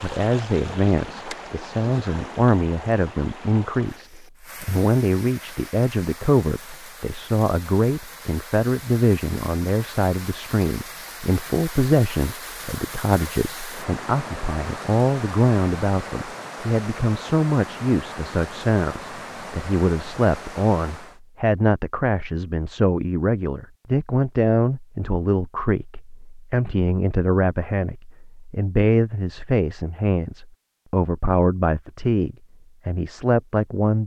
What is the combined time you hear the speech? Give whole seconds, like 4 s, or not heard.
34 s.